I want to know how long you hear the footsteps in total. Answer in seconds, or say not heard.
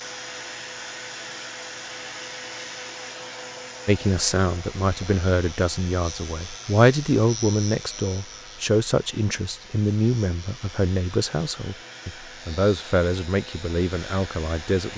not heard.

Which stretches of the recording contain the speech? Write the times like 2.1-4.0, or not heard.
3.9-14.9.